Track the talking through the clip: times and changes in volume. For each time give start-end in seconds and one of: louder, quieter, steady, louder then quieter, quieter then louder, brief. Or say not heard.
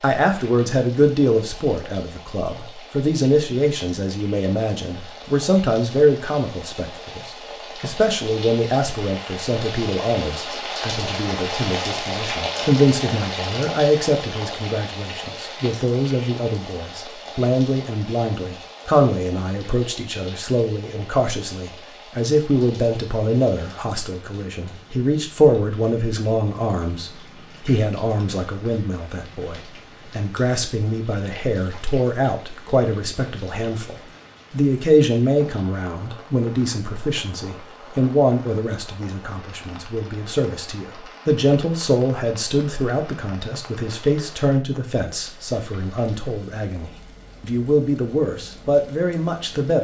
0.0-49.8 steady.